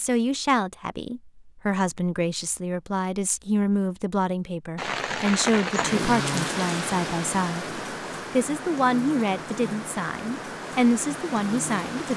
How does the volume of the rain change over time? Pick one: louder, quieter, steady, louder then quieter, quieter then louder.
quieter.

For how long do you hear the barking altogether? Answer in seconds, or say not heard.
not heard.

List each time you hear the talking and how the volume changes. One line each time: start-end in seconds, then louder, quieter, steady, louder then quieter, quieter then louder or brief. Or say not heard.
0.0-12.1 steady.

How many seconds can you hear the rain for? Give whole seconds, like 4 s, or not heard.
7 s.